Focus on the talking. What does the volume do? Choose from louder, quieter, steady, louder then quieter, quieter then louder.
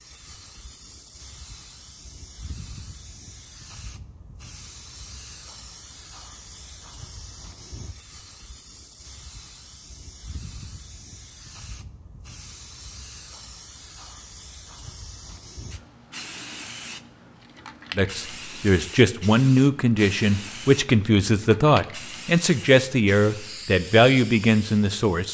steady.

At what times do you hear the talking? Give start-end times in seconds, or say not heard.
17.9-25.2.